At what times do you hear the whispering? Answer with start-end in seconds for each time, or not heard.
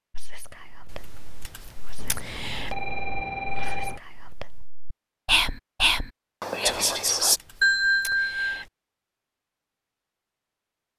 0.1-7.4.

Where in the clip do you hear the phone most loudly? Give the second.
8 s.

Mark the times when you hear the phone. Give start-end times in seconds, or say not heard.
1.9-4.0, 7.6-8.7.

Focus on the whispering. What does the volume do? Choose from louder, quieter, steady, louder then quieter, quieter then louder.
louder.